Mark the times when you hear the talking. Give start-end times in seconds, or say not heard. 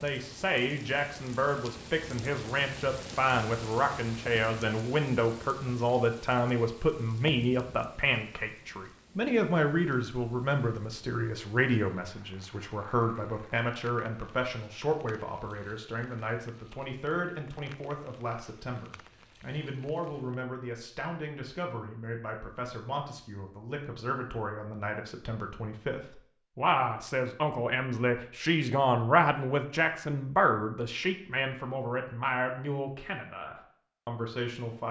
0.0-34.8.